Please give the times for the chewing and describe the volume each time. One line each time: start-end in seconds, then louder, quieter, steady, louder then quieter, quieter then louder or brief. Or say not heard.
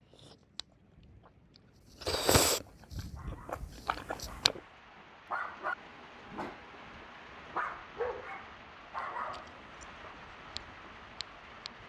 0.1-4.7 louder then quieter
8.9-11.8 brief.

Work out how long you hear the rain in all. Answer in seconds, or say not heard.
12 s.